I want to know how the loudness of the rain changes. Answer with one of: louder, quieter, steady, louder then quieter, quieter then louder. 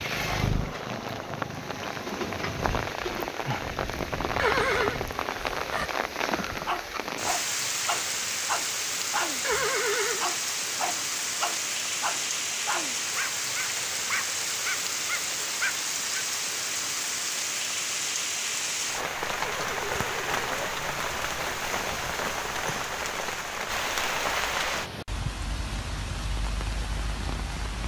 steady.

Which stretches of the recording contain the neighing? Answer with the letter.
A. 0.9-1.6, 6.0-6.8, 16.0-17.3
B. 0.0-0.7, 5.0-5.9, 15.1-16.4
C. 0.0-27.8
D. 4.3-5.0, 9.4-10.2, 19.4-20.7
D.